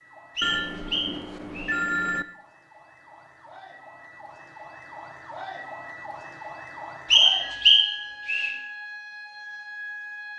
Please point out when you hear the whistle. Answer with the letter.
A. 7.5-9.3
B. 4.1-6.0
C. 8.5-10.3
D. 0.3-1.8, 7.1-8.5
D.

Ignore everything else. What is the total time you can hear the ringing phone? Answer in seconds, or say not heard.
2 s.